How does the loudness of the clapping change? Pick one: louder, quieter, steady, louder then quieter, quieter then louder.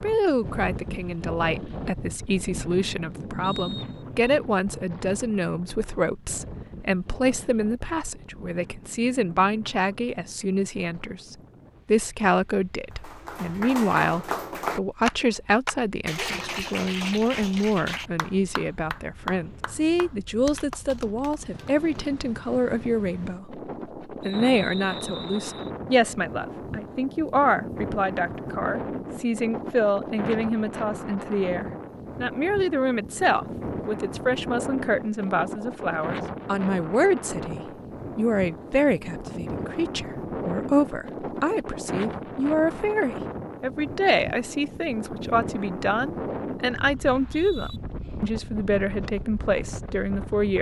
quieter.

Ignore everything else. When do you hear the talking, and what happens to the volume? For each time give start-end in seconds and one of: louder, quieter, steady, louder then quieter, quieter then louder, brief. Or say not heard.
0.0-50.5 steady.